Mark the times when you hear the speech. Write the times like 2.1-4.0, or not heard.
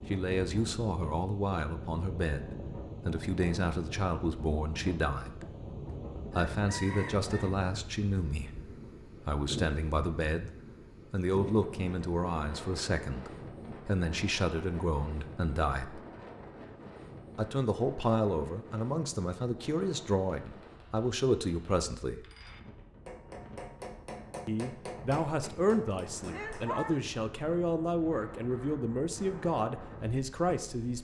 0.1-5.7, 6.3-10.5, 11.1-16.0, 17.4-22.2, 24.4-30.9.